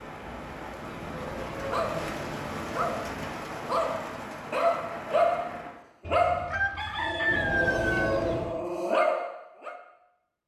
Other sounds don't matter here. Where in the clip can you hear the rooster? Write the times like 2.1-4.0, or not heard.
6.0-8.1.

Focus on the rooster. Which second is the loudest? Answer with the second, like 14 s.
7 s.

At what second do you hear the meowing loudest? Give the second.
8 s.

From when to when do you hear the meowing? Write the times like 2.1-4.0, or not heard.
0.8-3.5, 7.2-8.6.